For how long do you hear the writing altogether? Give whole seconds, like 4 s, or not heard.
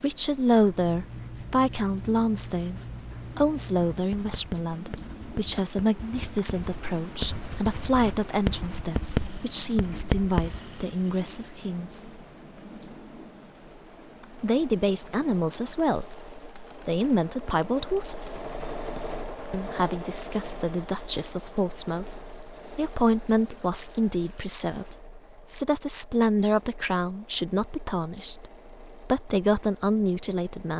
10 s.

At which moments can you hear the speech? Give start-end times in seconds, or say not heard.
0.0-12.2, 14.4-18.4, 19.5-30.7.